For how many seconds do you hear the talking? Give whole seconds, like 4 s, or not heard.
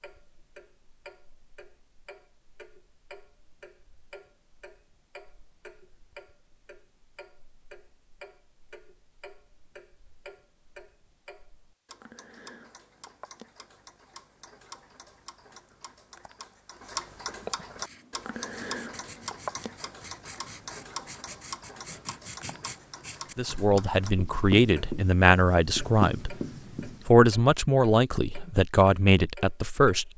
6 s.